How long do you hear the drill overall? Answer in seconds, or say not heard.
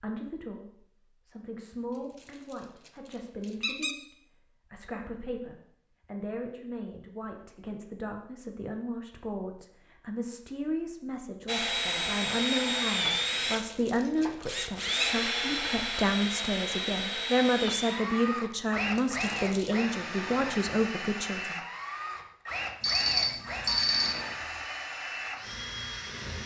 15 s.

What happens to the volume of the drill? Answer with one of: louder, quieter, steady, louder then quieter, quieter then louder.
quieter.